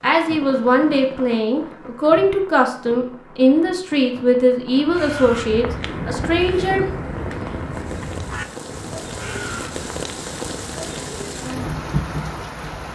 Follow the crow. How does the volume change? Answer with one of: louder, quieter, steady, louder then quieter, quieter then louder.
quieter.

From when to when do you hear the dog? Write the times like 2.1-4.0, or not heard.
not heard.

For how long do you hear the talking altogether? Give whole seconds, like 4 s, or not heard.
7 s.